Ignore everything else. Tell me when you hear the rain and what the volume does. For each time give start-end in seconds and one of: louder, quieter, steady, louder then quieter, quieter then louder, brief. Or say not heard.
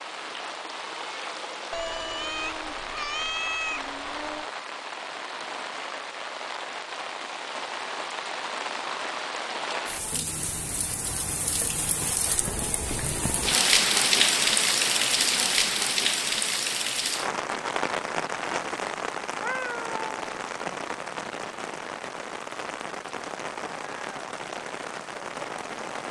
0.0-26.0 louder then quieter.